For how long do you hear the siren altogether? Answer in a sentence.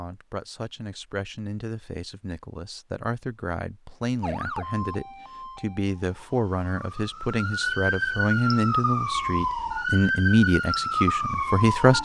You can hear the siren for 8 seconds altogether.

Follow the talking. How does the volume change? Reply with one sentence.
The loudness of the talking goes up.